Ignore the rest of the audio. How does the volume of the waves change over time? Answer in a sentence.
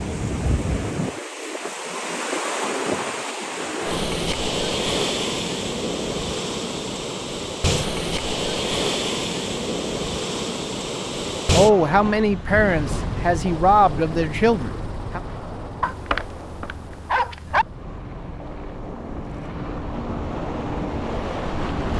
The volume of the waves goes down.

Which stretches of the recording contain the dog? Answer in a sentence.
The dog can be heard from 15.8 to 17.6 s.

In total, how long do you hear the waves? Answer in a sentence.
You can hear the waves for 22 seconds altogether.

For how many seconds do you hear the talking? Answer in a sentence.
The talking can be heard for 4 seconds in total.